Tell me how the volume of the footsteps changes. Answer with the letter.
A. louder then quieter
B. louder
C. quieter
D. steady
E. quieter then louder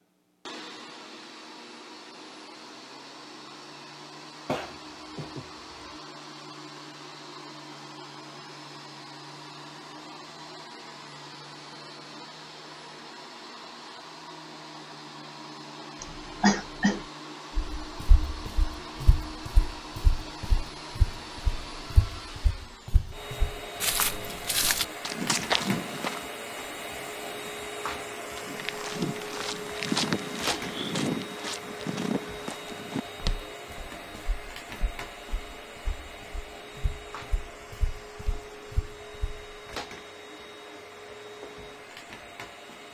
A.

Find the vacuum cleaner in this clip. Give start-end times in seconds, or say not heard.
0.0-42.8.